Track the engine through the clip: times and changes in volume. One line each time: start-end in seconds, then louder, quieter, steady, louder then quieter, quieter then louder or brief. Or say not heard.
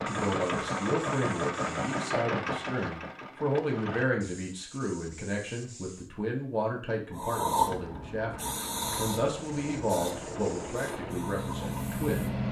0.0-4.0 quieter
7.6-12.4 louder.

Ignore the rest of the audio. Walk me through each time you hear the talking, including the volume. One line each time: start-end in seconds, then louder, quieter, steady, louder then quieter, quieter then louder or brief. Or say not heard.
0.1-12.3 steady.